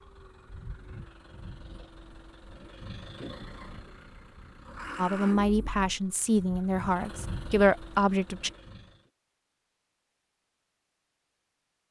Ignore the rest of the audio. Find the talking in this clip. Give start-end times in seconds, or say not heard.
5.0-8.5.